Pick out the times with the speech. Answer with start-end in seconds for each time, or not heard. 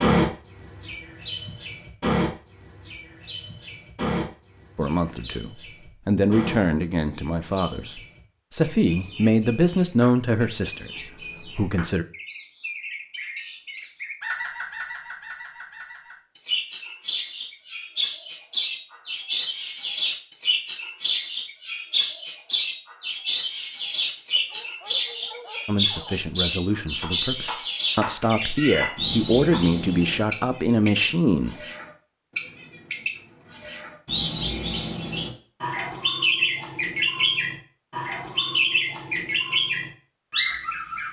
4.8-12.1, 25.6-31.6.